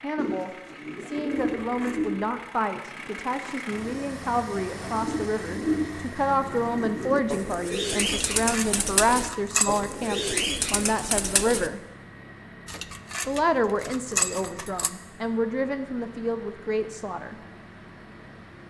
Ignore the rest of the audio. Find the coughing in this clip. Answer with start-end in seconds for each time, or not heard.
not heard.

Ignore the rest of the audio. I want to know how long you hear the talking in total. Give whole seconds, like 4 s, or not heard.
16 s.